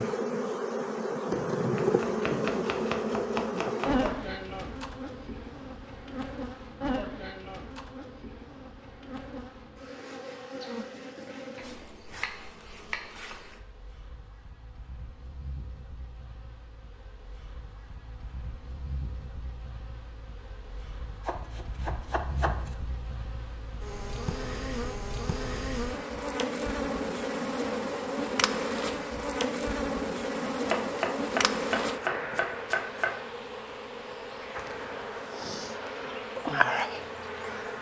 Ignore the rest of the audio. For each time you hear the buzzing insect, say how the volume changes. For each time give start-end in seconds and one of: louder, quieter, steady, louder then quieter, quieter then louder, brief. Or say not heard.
0.0-37.7 quieter then louder.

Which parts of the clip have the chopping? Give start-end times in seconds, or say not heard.
1.8-4.2, 11.6-13.2, 21.2-22.8, 30.5-33.2.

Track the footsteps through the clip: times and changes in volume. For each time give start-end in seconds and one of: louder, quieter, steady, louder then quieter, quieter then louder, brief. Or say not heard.
not heard.